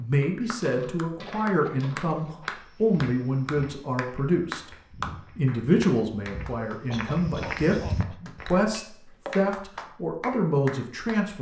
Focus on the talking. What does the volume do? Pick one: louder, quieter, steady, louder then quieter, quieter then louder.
steady.